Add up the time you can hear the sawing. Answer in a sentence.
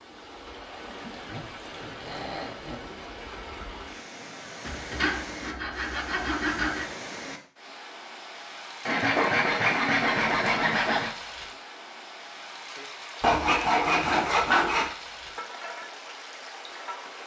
You can hear the sawing for 8 seconds altogether.